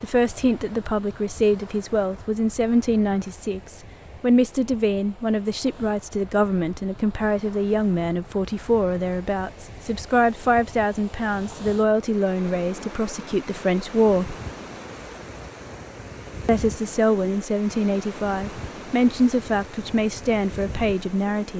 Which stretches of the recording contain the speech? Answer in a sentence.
You can hear the speech from 0.0 to 14.3 s and from 16.4 to 21.5 s.